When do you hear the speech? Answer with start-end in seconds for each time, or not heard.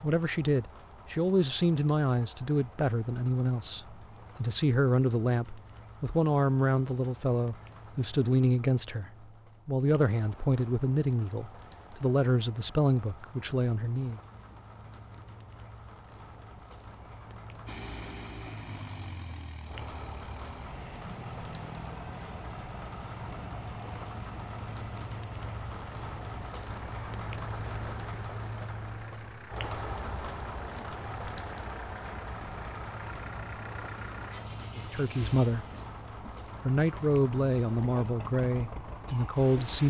0.0-14.2, 34.8-35.6, 36.6-39.8.